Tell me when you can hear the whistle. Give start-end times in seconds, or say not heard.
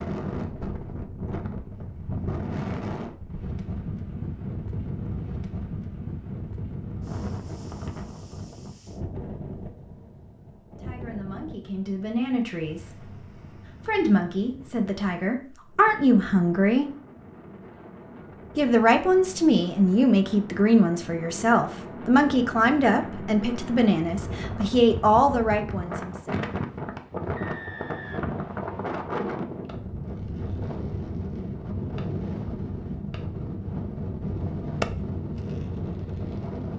27.4-28.9.